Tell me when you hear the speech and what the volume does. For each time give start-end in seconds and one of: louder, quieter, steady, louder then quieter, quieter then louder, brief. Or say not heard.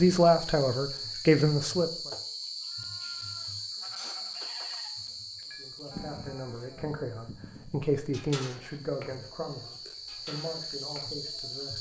0.0-2.1 brief
5.5-11.7 louder then quieter.